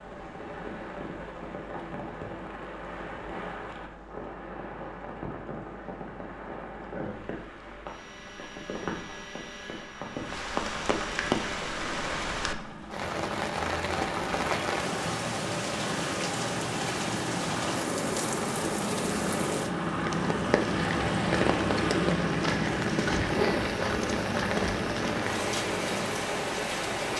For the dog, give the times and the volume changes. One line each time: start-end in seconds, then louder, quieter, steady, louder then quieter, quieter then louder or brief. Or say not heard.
not heard.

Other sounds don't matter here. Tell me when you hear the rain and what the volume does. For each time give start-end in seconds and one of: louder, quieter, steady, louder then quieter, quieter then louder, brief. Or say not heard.
0.0-27.1 louder.